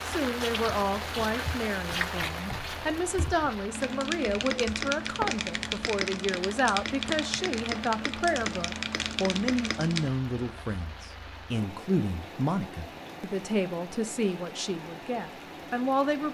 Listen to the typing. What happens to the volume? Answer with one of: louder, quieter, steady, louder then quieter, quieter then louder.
louder.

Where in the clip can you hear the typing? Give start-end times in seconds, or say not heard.
0.7-10.1.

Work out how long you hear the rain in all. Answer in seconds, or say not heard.
16 s.